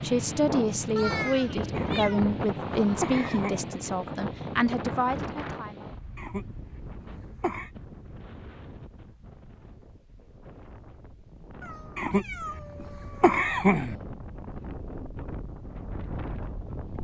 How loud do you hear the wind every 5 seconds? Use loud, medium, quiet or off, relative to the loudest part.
loud, medium, quiet, medium.